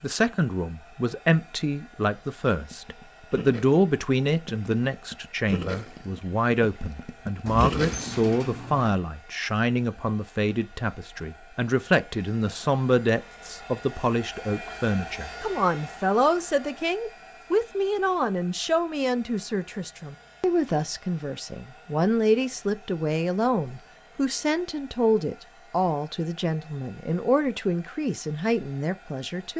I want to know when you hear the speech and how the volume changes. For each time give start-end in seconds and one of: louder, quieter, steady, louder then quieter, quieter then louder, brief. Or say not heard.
0.0-29.5 steady.